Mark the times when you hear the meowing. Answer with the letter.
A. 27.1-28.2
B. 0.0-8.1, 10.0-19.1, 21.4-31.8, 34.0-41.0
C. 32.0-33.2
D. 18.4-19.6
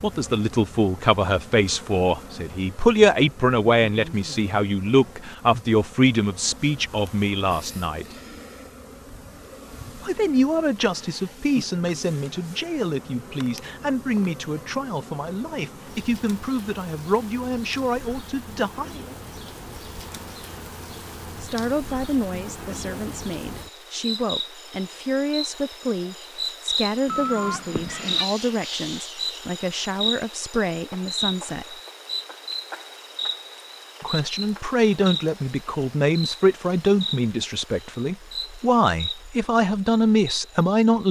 A.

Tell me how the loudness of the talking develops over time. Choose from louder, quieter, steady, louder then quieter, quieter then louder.
quieter then louder.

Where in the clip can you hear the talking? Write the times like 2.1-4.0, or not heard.
0.0-8.1, 10.0-19.1, 21.4-31.8, 34.0-41.0.